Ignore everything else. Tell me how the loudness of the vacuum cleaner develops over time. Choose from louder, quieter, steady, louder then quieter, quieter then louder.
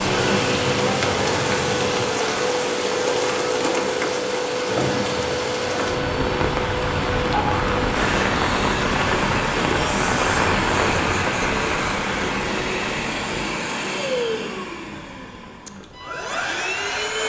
steady.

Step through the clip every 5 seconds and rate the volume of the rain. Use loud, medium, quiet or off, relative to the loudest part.
loud, loud, loud, quiet.